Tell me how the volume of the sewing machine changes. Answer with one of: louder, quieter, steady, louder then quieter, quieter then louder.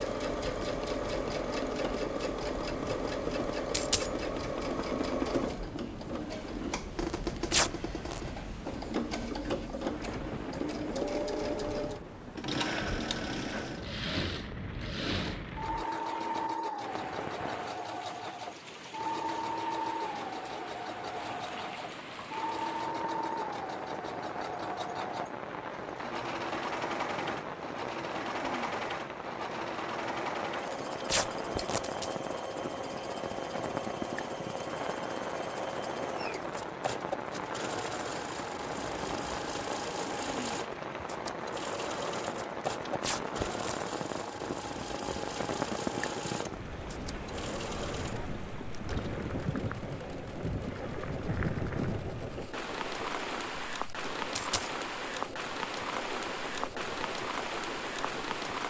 quieter.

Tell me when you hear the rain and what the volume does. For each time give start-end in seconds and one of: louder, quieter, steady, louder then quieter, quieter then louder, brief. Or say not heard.
0.0-58.6 louder.